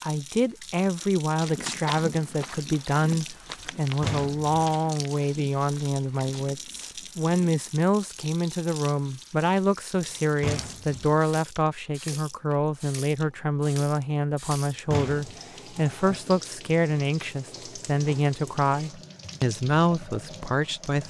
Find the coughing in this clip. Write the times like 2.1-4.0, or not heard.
not heard.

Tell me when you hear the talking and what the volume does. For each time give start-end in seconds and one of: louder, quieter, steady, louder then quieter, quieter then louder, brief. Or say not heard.
0.0-21.0 steady.